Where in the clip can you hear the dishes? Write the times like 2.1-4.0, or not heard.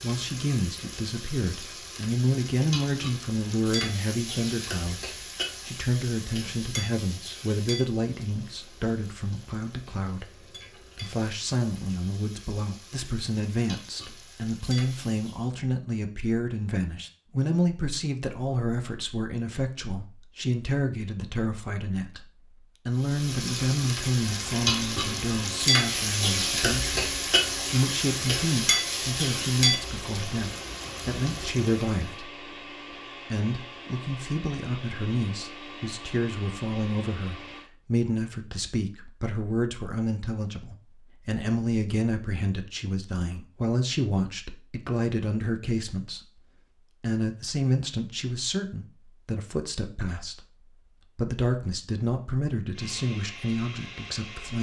not heard.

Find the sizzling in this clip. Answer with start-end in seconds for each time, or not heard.
0.0-15.5, 23.0-32.0.